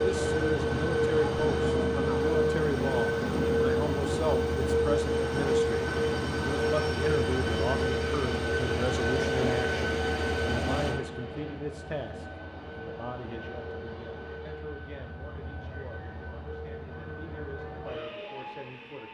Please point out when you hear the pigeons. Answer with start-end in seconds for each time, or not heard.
not heard.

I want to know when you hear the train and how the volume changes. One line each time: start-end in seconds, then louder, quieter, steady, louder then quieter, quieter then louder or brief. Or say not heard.
0.0-19.1 quieter.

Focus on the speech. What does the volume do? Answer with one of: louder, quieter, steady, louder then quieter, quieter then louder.
quieter.